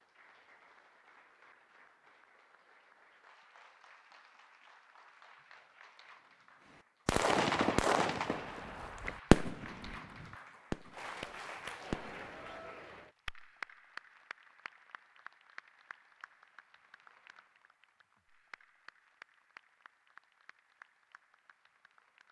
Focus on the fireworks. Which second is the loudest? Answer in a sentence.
The volume of the fireworks peaks at 9 seconds.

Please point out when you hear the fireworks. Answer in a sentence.
You can hear the fireworks from 7.0 to 9.9 s and from 10.7 to 12.3 s.